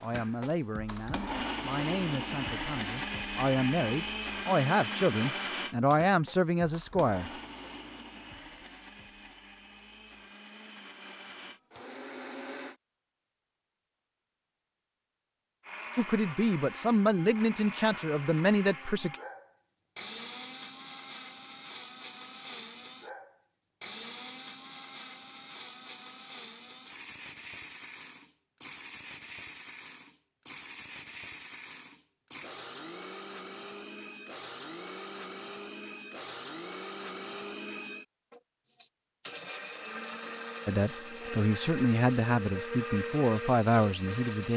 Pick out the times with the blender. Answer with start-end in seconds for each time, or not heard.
0.0-12.8, 15.6-44.5.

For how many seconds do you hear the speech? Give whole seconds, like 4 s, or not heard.
14 s.